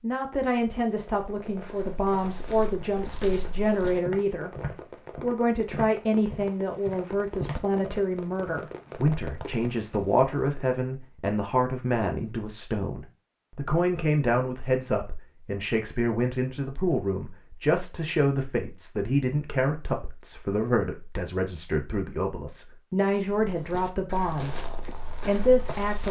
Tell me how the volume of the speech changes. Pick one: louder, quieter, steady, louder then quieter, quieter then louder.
steady.